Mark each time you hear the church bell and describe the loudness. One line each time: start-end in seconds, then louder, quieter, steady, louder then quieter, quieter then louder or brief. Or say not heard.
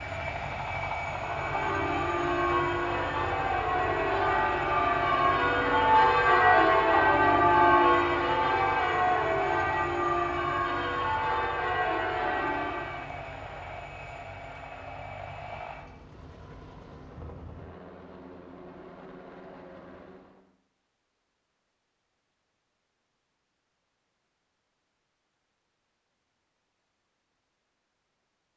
1.1-13.1 louder then quieter.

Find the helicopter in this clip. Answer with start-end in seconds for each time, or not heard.
0.0-20.5.